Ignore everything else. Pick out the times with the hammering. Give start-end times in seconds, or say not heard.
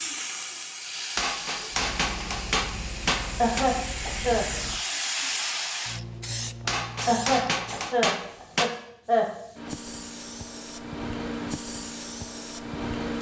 1.1-3.6, 6.7-8.7.